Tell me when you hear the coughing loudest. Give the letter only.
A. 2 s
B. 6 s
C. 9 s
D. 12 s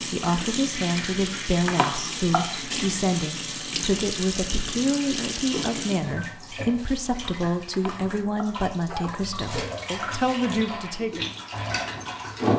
A.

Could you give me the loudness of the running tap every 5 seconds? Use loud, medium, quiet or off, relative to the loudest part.
loud, medium, loud.